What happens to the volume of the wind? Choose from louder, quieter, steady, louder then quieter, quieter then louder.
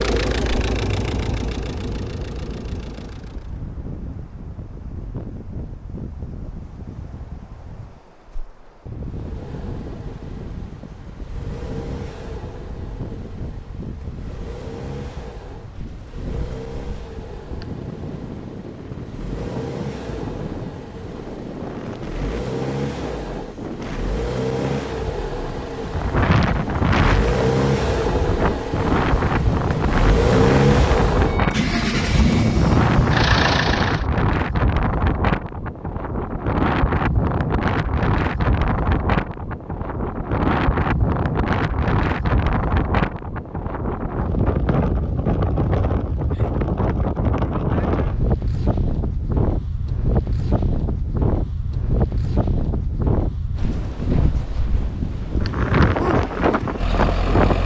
louder.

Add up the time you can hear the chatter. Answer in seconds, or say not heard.
not heard.